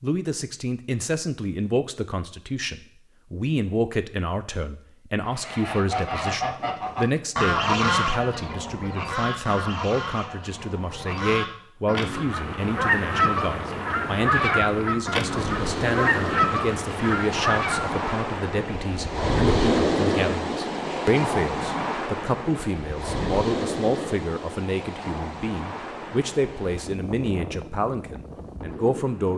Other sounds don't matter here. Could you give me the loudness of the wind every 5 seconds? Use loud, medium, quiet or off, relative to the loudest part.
off, off, medium, loud, loud, medium.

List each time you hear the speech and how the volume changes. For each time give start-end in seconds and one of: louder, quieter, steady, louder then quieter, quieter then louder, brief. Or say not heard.
0.0-29.3 steady.